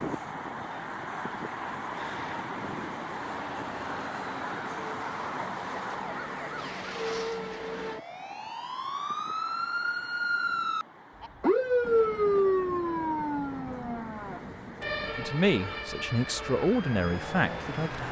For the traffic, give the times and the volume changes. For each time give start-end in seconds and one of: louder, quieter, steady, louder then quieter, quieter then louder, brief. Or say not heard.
0.0-18.0 quieter then louder.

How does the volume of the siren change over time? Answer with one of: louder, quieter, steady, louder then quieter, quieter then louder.
louder then quieter.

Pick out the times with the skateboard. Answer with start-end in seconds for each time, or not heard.
not heard.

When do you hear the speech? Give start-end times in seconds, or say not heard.
15.2-18.0.